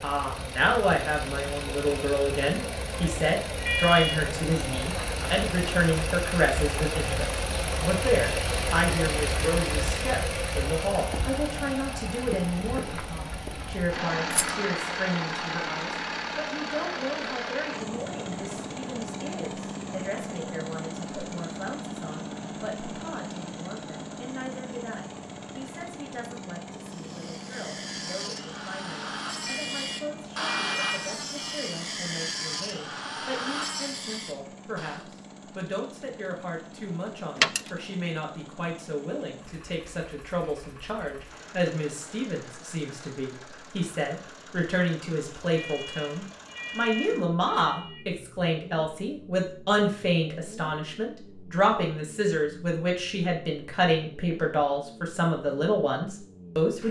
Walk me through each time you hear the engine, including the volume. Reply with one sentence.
You can hear the engine from 0.0 to 56.8 s, getting quieter.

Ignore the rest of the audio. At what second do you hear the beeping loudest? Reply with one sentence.
The volume of the beeping peaks at 4 seconds.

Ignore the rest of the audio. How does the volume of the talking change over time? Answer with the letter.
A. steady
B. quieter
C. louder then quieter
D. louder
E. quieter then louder
E.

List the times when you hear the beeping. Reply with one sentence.
You can hear the beeping from 3.5 to 4.2 s, from 29.4 to 31.8 s and from 45.5 to 48.0 s.